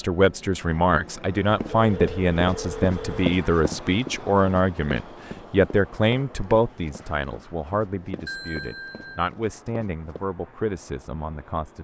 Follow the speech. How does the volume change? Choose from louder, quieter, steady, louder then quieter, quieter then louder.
quieter.